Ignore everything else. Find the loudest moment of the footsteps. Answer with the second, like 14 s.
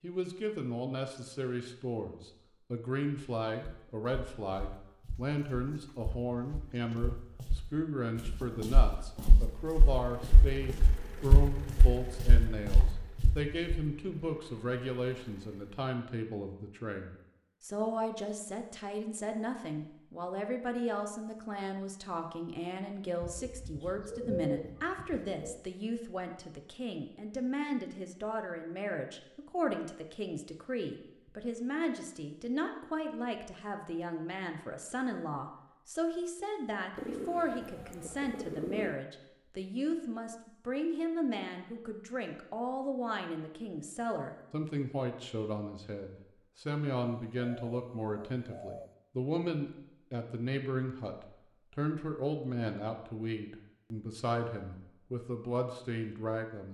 11 s.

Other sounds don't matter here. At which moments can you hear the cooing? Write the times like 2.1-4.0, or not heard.
5.2-7.2, 23.2-25.6, 37.0-39.0, 47.0-48.9.